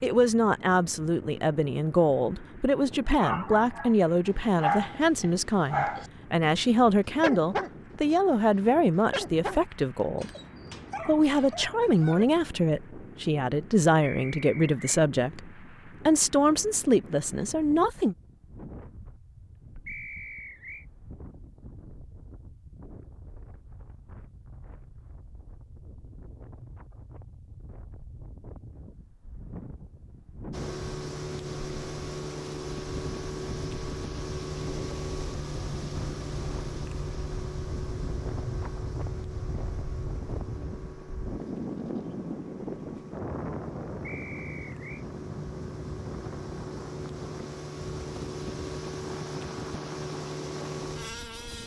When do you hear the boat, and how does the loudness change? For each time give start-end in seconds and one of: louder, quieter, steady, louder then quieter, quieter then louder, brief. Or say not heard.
30.5-51.6 quieter then louder.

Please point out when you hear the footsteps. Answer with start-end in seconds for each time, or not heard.
not heard.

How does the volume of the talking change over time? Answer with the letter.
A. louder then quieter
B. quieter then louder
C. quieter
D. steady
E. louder
D.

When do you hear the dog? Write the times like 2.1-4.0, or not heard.
3.1-6.1, 7.2-7.7, 9.1-12.2.